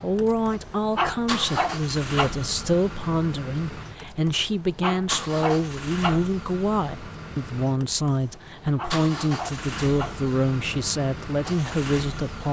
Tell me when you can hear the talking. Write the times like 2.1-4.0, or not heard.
0.0-12.4.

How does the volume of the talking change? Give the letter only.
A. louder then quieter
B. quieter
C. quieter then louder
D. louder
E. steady
E.